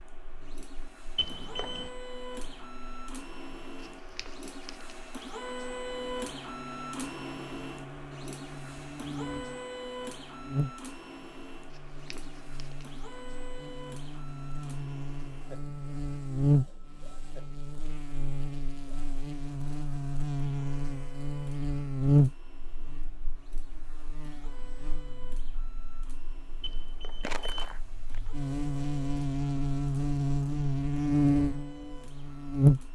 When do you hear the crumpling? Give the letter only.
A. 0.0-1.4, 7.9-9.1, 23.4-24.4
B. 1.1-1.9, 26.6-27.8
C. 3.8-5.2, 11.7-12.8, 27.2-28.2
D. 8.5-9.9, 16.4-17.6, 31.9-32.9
C.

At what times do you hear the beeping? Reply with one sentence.
The beeping can be heard from 1.1 to 1.9 s and from 26.6 to 27.8 s.